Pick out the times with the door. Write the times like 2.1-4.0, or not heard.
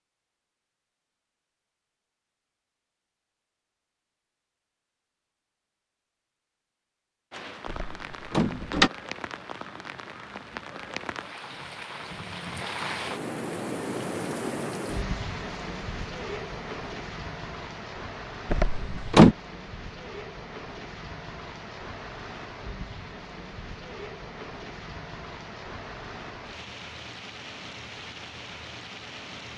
7.7-8.9, 18.4-19.4.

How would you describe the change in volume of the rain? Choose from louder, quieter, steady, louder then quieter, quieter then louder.
louder then quieter.